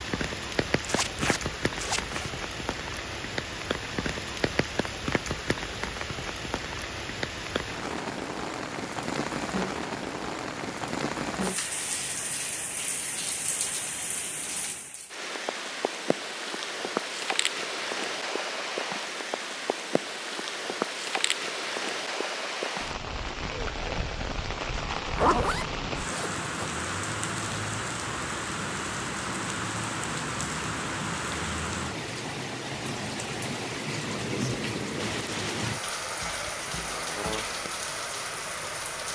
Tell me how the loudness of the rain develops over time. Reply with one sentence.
The loudness of the rain stays about the same.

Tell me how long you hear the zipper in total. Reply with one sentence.
You can hear the zipper for 3 seconds altogether.